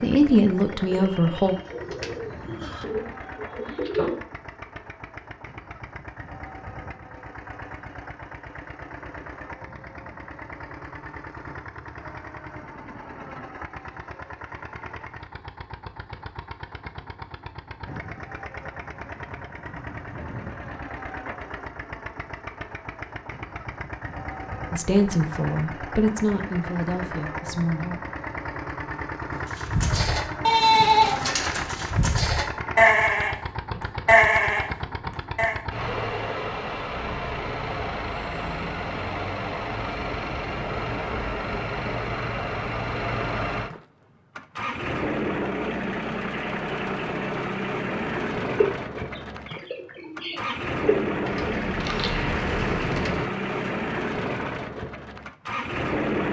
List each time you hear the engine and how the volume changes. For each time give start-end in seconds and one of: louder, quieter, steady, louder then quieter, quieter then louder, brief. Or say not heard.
0.0-56.2 louder.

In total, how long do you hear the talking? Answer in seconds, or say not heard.
5 s.